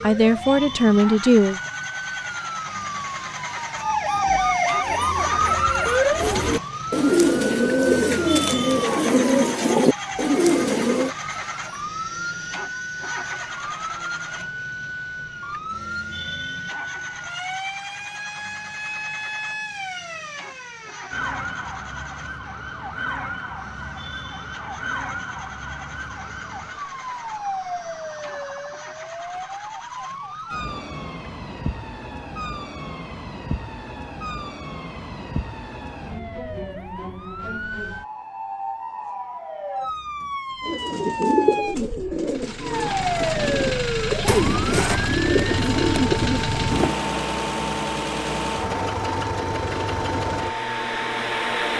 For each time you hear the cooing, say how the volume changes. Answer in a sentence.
You can hear the cooing from 4.8 to 11.1 s, getting louder; and from 40.6 to 47.0 s, getting quieter then louder.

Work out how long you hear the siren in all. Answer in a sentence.
You can hear the siren for 52 seconds altogether.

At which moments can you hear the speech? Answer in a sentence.
The speech can be heard from 0.0 to 1.6 s.